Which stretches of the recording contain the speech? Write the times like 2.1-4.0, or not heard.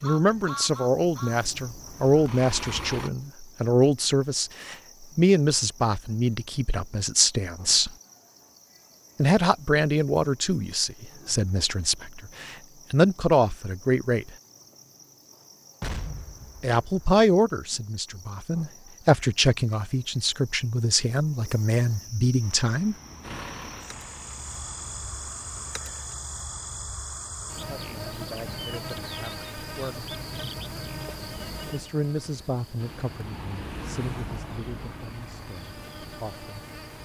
0.0-7.9, 9.2-14.3, 16.6-22.9, 27.5-30.1, 31.7-36.5.